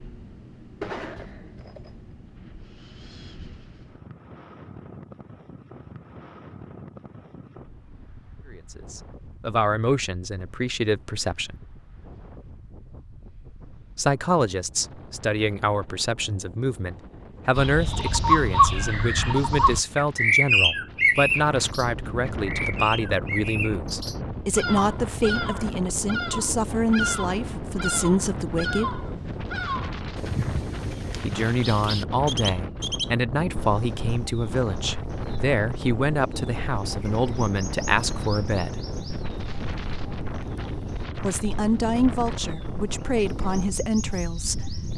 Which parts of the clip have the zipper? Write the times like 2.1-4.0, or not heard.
0.8-1.9.